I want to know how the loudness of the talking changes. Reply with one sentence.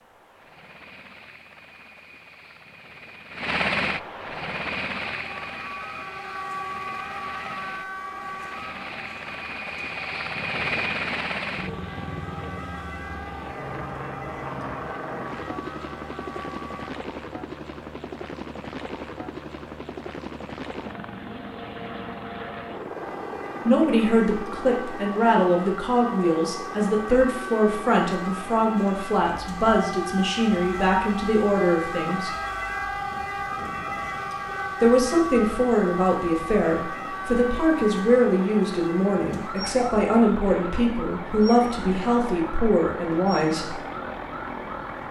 The volume of the talking stays about the same.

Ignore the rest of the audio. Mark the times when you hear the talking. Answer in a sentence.
The talking can be heard from 23.6 to 32.3 s and from 34.8 to 43.8 s.